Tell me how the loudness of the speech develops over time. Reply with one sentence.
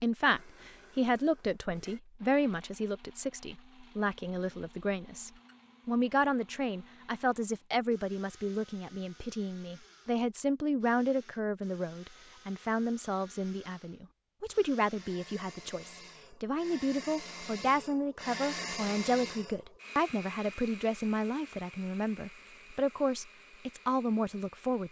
The volume of the speech stays about the same.